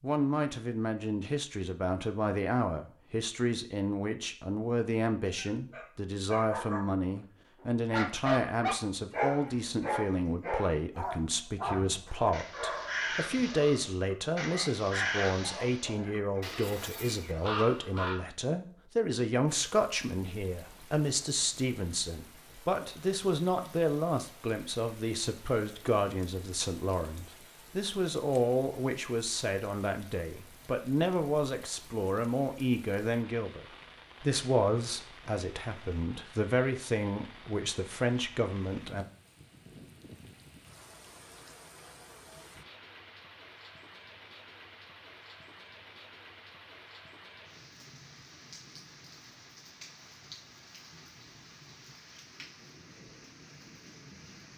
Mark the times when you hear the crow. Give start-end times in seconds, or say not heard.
11.6-18.2.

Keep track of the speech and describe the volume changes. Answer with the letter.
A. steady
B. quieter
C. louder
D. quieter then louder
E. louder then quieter
A.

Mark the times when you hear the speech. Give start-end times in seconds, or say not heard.
0.0-39.0.